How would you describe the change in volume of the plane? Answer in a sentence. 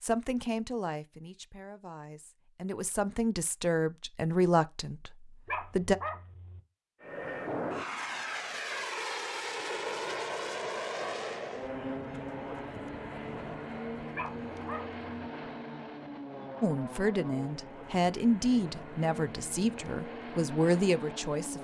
The loudness of the plane goes down.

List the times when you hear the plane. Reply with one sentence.
You can hear the plane from 7.0 to 21.5 s.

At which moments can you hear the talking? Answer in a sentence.
The talking can be heard from 0.0 to 6.0 s and from 16.6 to 21.5 s.